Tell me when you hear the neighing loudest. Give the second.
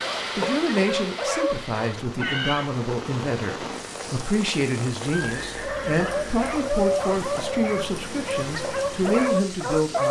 2 s.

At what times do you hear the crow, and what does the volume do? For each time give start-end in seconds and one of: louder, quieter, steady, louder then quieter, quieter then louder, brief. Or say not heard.
not heard.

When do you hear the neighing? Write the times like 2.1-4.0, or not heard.
2.0-2.7, 5.0-6.3.